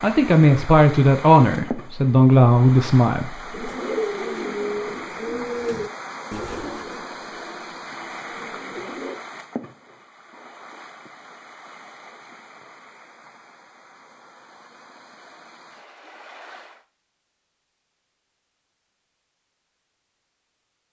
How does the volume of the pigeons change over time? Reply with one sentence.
The volume of the pigeons goes down.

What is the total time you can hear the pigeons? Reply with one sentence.
You can hear the pigeons for 6 seconds altogether.